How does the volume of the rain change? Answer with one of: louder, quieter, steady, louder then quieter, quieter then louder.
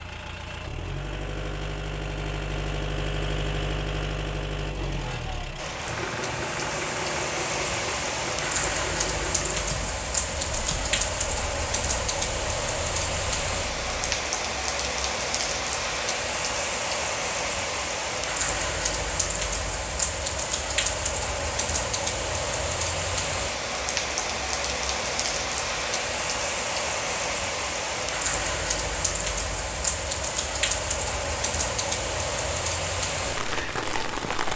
steady.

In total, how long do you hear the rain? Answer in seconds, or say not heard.
29 s.